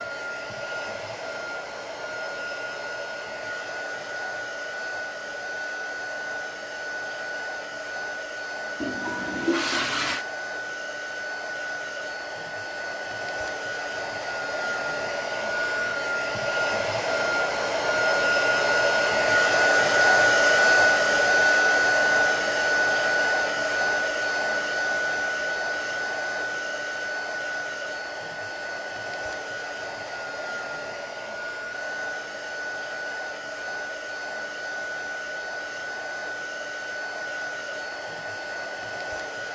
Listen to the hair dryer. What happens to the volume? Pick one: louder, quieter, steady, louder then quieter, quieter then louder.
louder then quieter.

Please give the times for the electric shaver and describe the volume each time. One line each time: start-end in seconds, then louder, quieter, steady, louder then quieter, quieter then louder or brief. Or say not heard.
not heard.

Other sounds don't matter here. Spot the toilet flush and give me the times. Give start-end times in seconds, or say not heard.
8.8-10.2.